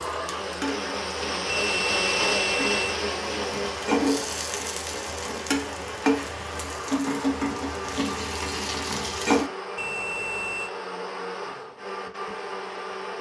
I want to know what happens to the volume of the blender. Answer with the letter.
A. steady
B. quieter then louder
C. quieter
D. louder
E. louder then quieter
C.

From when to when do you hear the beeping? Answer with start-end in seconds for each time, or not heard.
1.4-2.8, 9.8-10.7.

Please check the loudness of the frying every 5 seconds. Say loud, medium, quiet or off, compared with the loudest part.
loud, loud, off.